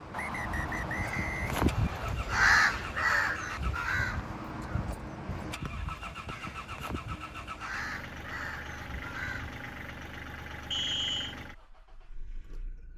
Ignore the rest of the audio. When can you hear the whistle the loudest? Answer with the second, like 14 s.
11 s.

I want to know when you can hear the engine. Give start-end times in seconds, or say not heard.
0.0-12.9.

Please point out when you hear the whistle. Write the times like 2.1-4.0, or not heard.
0.1-2.1, 5.7-6.3, 10.7-11.3.